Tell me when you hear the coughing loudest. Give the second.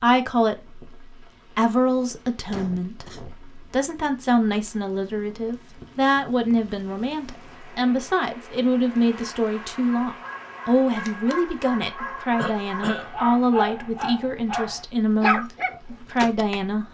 13 s.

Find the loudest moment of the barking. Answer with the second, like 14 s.
15 s.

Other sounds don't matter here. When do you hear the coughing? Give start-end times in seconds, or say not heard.
2.5-3.4, 12.3-13.1.